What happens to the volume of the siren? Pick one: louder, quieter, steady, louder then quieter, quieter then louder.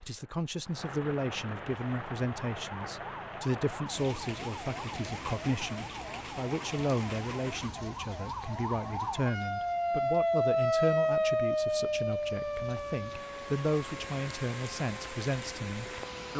louder then quieter.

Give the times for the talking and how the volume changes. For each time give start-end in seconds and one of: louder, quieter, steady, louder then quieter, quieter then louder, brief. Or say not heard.
0.0-16.3 steady.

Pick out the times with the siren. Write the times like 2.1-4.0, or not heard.
1.9-16.3.